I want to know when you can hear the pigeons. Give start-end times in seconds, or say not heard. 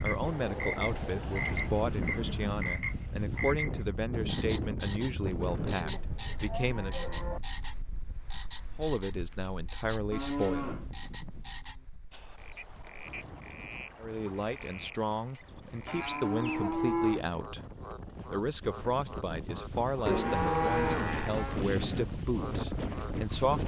not heard.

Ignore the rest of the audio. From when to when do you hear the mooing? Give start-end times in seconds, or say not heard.
1.1-2.6, 5.3-7.4, 10.1-11.5, 15.8-17.3, 20.1-21.6.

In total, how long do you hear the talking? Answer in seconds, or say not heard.
18 s.